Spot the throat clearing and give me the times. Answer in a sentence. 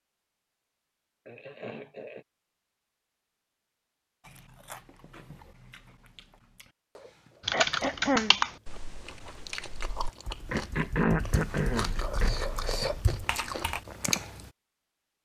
You can hear the throat clearing from 1.2 to 2.2 s, from 7.5 to 8.3 s and from 10.5 to 12.3 s.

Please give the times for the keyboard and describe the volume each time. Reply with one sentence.
You can hear the keyboard from 7.5 to 13.8 s, getting quieter then louder.